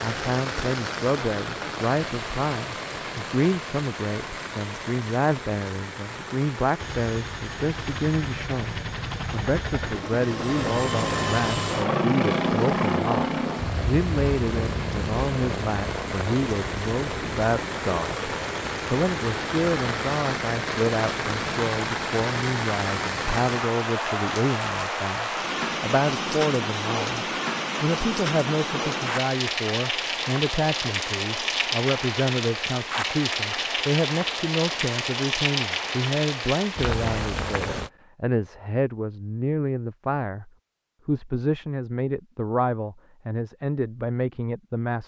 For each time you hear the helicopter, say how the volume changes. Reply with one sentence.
You can hear the helicopter from 6.8 to 21.7 s, getting louder then quieter.